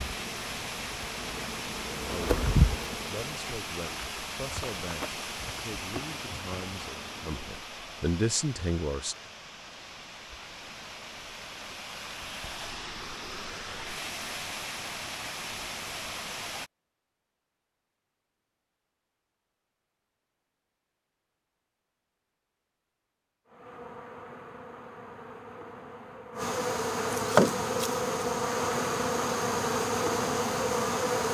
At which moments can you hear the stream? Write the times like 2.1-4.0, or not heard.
0.0-16.7.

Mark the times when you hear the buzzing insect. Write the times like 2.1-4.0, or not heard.
0.0-7.7, 23.4-31.3.